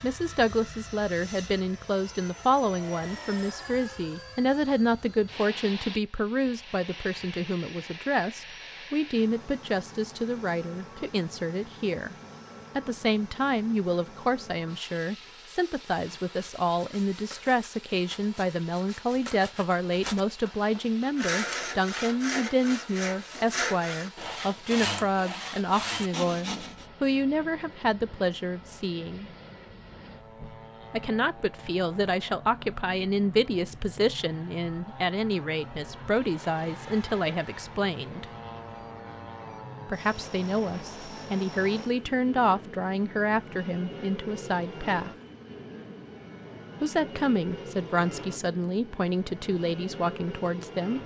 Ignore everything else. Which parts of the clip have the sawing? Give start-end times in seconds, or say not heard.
15.9-26.9.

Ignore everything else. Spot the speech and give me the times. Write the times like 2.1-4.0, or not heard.
0.0-12.2, 12.8-29.3, 30.9-38.2, 39.9-45.1, 46.8-51.0.